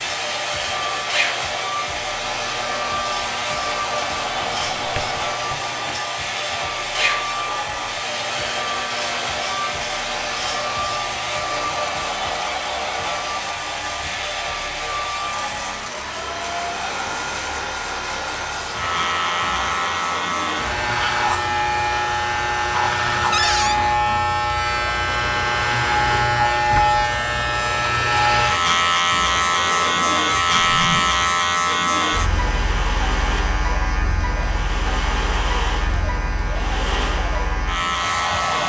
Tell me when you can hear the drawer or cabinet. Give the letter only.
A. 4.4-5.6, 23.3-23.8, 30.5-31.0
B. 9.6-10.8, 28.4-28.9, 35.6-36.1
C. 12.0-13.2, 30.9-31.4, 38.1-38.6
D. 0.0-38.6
A.